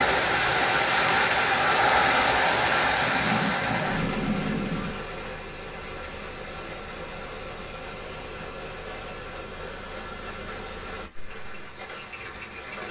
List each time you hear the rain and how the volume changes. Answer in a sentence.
You can hear the rain from 0.0 to 12.8 s, getting quieter.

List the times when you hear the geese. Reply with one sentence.
You can hear the geese from 3.0 to 5.0 s.